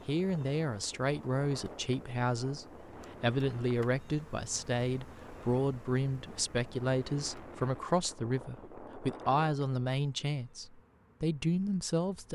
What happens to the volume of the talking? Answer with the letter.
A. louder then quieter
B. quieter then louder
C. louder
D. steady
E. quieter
D.